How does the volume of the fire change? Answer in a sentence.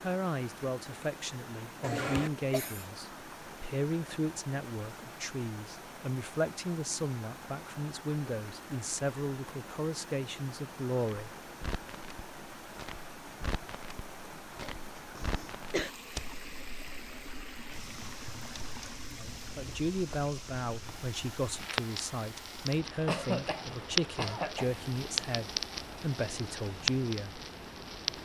The loudness of the fire goes up.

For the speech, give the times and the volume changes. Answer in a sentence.
You can hear the speech from 0.0 to 11.3 s, at a steady volume; and from 19.1 to 27.4 s, at a steady volume.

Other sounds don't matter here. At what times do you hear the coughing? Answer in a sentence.
You can hear the coughing from 1.8 to 3.0 s, from 14.6 to 15.9 s and from 23.1 to 24.9 s.